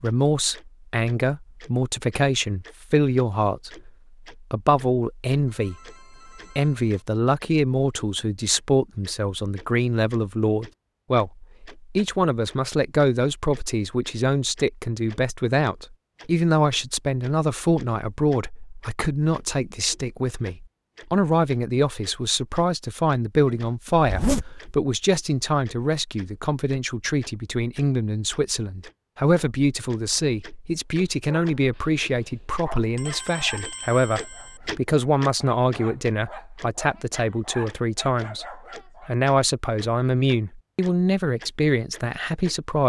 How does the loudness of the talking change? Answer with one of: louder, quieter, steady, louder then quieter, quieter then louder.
steady.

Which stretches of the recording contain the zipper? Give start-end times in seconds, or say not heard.
24.0-24.8.